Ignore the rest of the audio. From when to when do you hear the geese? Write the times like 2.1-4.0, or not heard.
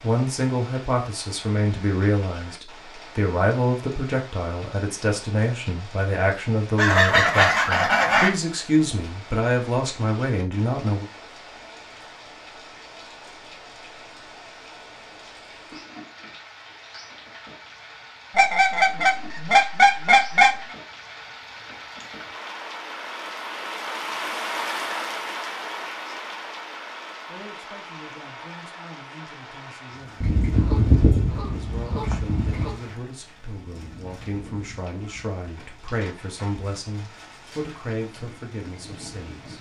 6.8-8.3, 18.4-20.5, 30.2-32.8.